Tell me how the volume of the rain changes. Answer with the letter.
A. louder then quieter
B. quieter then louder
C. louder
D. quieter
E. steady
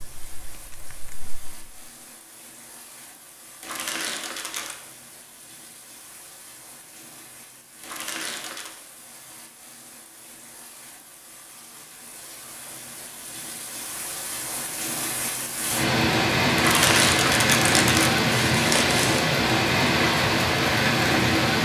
C.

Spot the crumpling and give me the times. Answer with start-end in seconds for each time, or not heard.
3.6-4.8, 7.8-8.7, 16.6-19.2.